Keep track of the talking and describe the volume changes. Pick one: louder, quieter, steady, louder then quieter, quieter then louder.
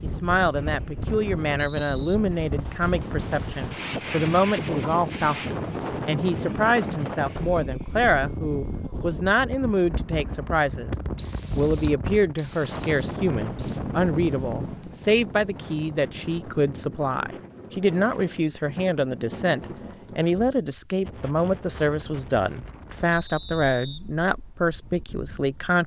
steady.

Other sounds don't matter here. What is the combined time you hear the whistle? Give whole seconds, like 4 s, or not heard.
5 s.